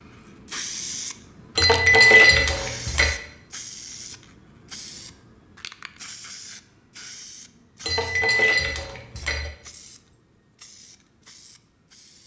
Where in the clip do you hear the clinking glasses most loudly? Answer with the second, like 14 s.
2 s.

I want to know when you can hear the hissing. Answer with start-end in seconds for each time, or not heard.
0.0-12.2.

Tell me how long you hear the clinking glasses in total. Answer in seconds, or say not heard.
3 s.